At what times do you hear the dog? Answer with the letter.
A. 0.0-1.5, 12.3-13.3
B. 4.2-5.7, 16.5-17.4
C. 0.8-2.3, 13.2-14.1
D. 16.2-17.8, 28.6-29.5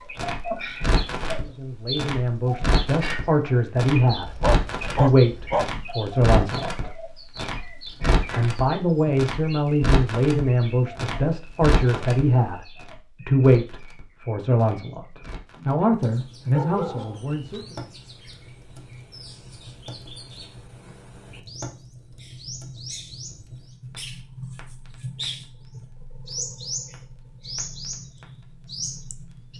B.